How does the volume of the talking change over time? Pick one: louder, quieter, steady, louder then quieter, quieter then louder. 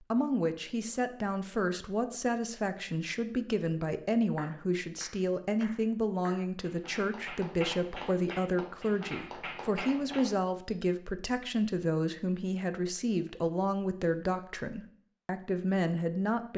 steady.